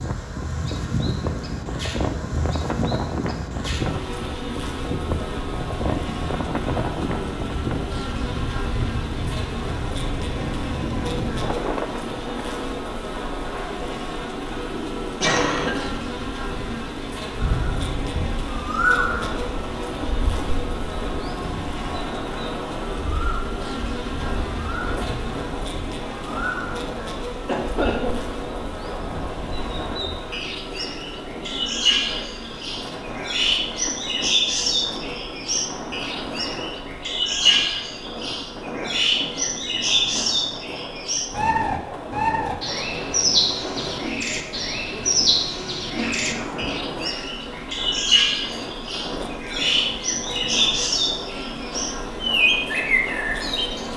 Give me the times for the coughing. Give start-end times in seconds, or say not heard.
15.2-15.9, 27.4-28.2, 46.0-46.8.